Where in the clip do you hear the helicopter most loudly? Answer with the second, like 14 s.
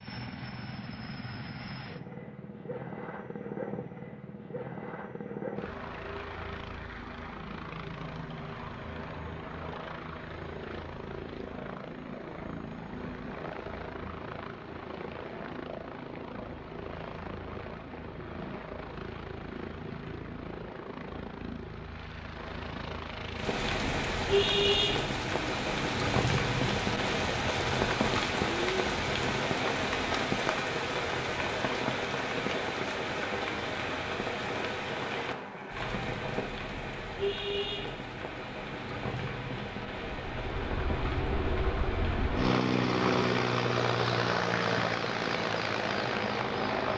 43 s.